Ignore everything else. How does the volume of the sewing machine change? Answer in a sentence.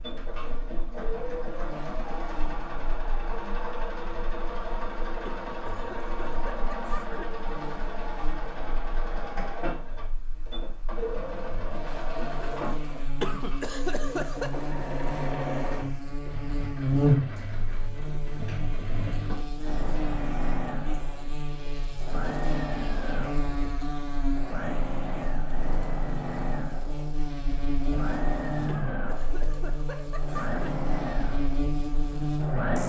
The volume of the sewing machine stays about the same.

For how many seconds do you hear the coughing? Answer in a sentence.
You can hear the coughing for 5 seconds altogether.